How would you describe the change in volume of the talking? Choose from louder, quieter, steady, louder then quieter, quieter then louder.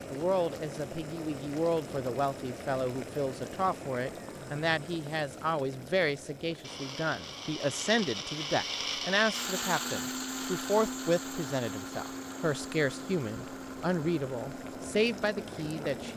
steady.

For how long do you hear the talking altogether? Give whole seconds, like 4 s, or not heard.
16 s.